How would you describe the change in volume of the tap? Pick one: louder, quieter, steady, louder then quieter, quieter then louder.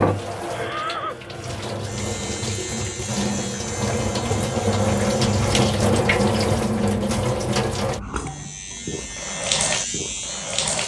louder then quieter.